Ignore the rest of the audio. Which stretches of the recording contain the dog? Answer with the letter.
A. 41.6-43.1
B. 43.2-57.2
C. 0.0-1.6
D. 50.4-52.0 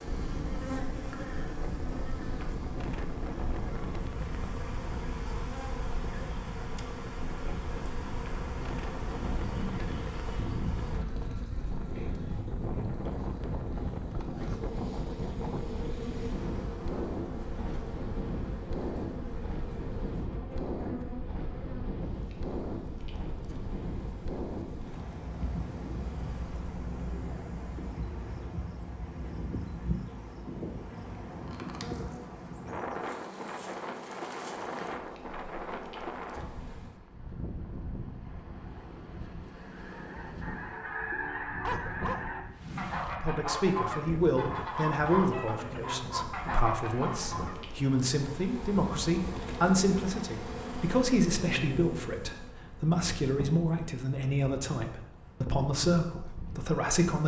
A.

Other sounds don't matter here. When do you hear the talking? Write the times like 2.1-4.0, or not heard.
43.2-57.2.